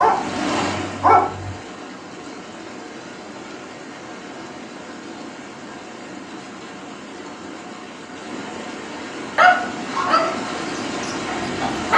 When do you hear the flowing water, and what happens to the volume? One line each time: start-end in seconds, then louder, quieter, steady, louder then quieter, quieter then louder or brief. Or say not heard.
0.0-11.9 quieter then louder.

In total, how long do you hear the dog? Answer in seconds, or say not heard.
4 s.